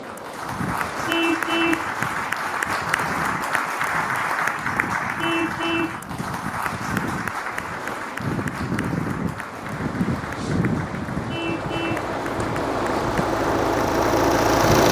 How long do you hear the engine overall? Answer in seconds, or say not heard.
3 s.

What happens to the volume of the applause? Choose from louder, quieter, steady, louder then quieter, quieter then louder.
quieter.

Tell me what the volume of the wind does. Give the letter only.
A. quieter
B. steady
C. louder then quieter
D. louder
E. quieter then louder
D.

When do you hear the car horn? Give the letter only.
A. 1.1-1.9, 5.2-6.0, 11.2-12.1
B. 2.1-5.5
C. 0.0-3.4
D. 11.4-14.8
A.